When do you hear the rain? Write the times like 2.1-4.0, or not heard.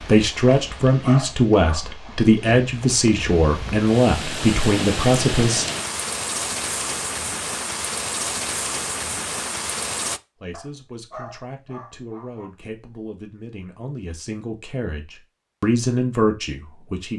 0.0-10.2.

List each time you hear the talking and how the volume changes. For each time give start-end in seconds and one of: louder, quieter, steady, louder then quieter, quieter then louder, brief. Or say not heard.
0.0-5.7 steady
10.4-17.1 louder.